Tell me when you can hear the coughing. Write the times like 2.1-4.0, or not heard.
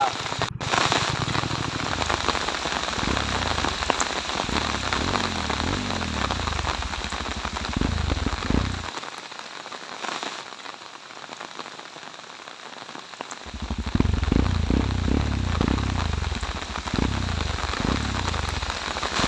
not heard.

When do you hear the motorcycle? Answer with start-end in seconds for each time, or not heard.
0.0-8.9, 13.4-19.2.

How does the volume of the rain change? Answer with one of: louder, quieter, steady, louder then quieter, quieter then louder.
quieter then louder.